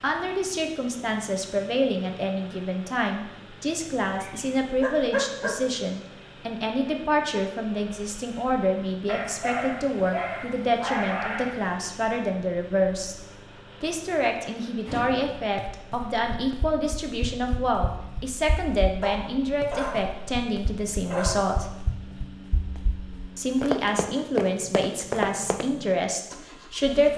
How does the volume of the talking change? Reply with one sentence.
The loudness of the talking stays about the same.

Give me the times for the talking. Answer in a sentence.
You can hear the talking from 0.0 to 13.2 s, from 13.8 to 21.7 s and from 23.4 to 27.1 s.